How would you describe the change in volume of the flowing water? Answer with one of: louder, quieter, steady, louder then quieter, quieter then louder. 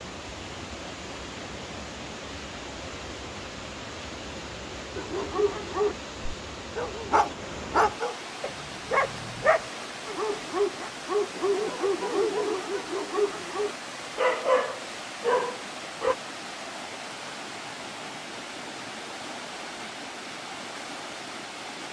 steady.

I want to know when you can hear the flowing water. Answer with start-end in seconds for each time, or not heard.
0.0-21.8.